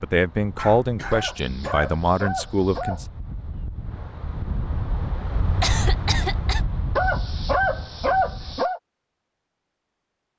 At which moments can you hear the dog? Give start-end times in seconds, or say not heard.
1.1-3.0, 7.0-8.8.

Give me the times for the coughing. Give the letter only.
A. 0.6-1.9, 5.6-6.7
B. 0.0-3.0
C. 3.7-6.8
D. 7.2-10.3
A.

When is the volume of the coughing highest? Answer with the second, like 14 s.
6 s.